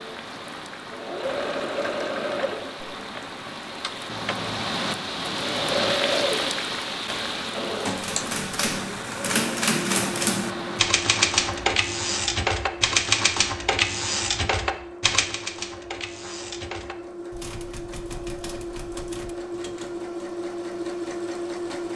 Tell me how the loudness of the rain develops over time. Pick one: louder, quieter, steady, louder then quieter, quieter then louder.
louder then quieter.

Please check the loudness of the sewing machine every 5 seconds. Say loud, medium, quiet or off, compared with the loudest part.
loud, loud, medium, medium, loud.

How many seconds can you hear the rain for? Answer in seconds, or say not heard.
12 s.